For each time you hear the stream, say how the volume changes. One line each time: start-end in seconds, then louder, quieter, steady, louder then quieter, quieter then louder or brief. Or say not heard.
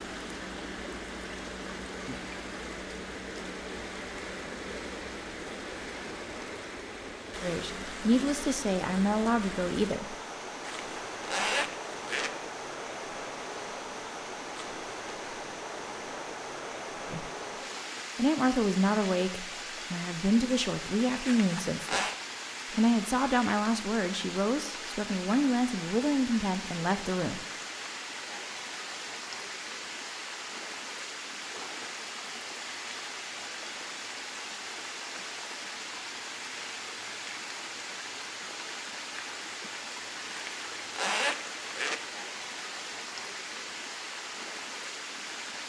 0.0-45.6 steady.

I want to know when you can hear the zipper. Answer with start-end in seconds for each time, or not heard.
10.7-12.3, 21.2-22.1, 40.3-42.0.